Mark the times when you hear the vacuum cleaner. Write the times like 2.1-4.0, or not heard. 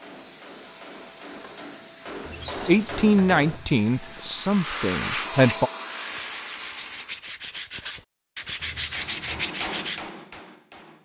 0.0-7.2.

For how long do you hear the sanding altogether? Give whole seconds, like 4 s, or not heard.
5 s.